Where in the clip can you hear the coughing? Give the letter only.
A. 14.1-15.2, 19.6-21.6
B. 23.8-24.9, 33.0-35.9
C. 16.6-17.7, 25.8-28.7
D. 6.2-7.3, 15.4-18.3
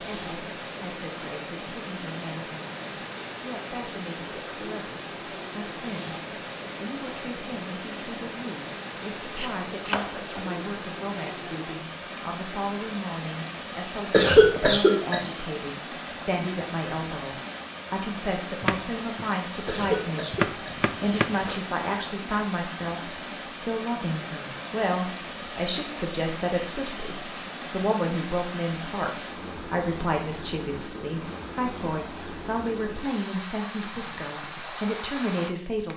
A.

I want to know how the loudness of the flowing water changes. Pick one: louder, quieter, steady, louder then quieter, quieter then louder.
steady.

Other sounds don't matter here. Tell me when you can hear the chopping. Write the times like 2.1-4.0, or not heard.
9.3-10.5, 18.6-21.5.